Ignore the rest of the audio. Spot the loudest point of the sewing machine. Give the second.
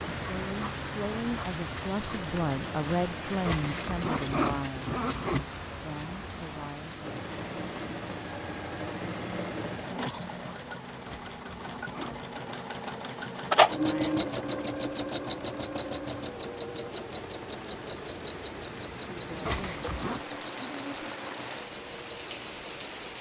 14 s.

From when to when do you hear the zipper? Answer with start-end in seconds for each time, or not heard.
3.5-5.5, 11.1-12.7, 19.4-20.2.